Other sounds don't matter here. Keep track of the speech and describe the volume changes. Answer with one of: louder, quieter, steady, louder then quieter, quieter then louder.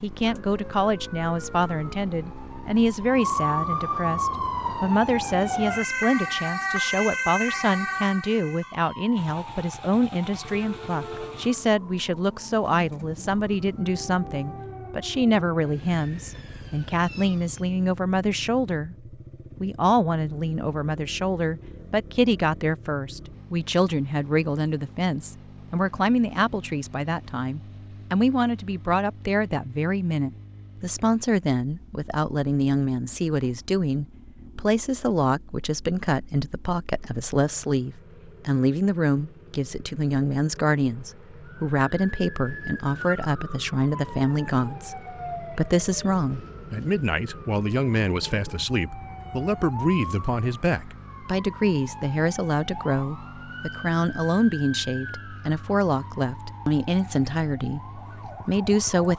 steady.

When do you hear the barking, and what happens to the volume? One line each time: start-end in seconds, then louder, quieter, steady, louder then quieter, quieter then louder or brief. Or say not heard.
not heard.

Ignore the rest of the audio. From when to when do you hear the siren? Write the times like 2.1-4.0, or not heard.
0.1-17.8, 41.5-59.1.